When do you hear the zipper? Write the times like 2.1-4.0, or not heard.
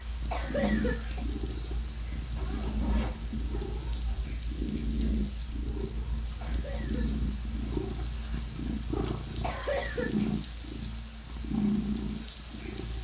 2.4-4.3, 8.0-9.8.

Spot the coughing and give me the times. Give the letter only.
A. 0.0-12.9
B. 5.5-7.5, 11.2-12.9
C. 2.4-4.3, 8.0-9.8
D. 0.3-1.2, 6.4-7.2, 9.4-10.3
D.